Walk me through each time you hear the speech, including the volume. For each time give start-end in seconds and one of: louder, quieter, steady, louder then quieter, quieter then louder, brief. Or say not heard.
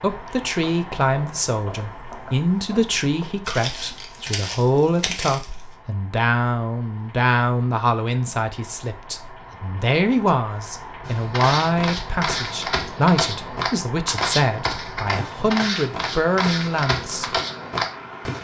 0.0-17.3 steady.